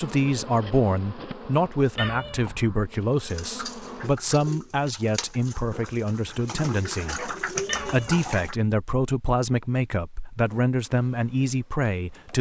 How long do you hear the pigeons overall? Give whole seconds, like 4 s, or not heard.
5 s.